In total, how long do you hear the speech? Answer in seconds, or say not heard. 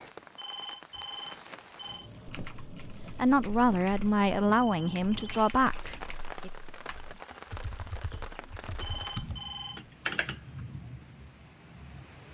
3 s.